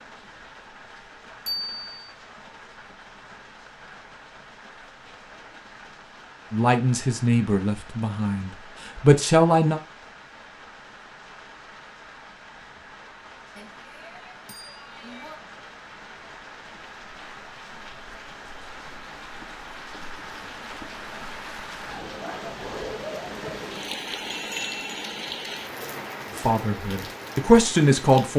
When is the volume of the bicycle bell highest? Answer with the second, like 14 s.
2 s.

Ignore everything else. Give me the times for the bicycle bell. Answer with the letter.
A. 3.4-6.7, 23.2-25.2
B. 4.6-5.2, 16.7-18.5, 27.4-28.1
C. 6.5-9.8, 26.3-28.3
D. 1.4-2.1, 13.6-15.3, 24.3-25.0
D.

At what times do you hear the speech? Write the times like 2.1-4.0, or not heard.
6.5-9.8, 26.3-28.3.